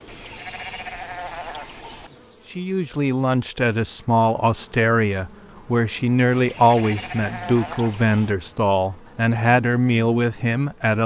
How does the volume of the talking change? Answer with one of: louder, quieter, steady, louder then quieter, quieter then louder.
steady.